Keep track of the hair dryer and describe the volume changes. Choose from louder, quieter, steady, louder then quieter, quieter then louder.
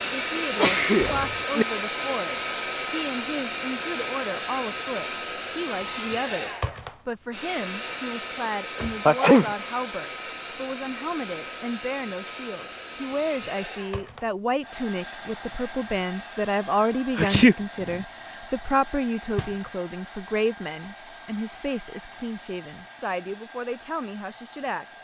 quieter.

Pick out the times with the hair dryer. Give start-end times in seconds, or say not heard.
0.0-25.0.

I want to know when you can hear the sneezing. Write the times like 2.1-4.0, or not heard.
0.3-1.6, 9.1-9.5, 17.1-17.6.